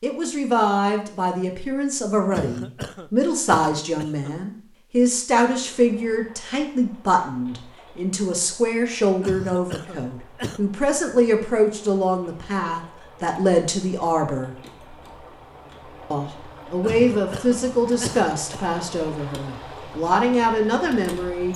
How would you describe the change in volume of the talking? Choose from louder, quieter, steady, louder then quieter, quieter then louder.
steady.